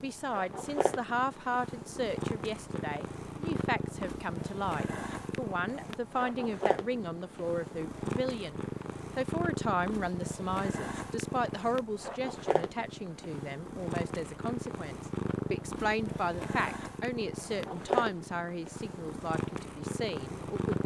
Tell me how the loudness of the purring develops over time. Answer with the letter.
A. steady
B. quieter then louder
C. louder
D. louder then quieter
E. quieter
A.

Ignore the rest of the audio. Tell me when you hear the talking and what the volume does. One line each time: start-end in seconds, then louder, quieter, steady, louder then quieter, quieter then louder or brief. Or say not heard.
0.0-20.8 steady.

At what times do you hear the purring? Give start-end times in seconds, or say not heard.
0.0-20.8.